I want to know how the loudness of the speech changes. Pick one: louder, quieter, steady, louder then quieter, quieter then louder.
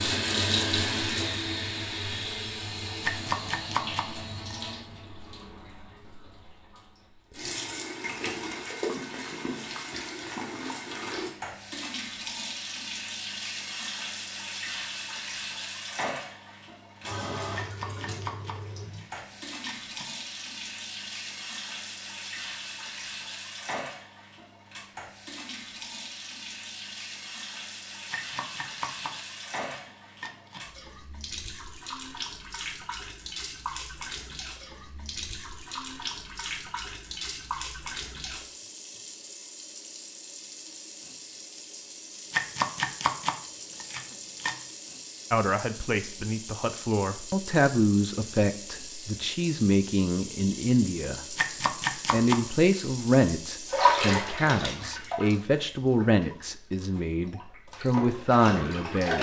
steady.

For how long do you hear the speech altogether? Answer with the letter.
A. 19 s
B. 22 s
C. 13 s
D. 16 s
C.